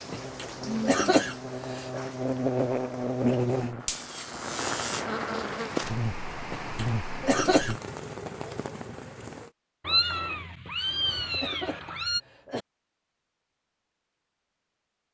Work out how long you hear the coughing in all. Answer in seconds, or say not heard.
5 s.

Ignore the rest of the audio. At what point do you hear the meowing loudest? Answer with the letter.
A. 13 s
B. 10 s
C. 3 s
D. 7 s
B.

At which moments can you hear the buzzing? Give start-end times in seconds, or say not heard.
0.0-7.8.